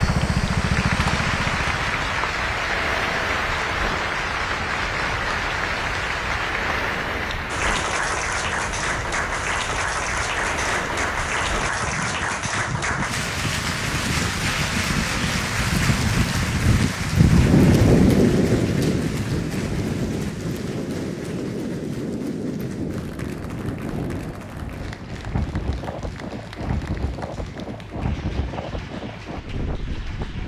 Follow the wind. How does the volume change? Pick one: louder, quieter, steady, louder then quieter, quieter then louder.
louder then quieter.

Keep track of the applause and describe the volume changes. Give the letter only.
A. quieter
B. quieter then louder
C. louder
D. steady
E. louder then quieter
A.